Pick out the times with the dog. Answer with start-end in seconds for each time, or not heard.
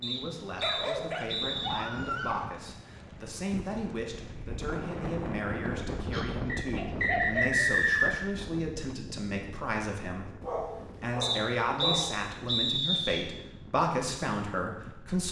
0.6-2.5, 5.9-7.7, 10.4-12.2.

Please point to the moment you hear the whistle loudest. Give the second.
8 s.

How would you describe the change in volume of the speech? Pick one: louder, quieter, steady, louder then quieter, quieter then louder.
louder.